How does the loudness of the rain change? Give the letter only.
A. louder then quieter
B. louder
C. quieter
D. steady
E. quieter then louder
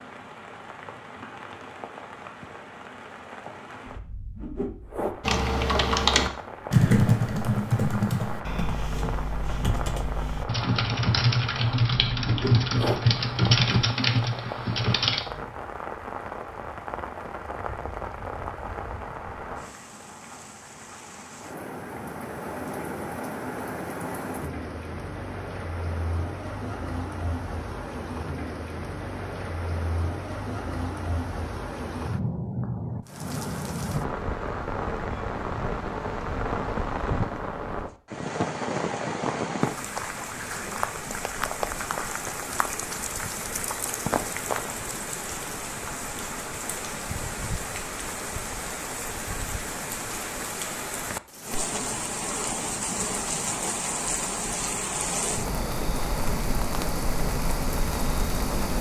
B.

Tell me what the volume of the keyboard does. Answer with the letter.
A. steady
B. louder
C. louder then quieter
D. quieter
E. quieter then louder
E.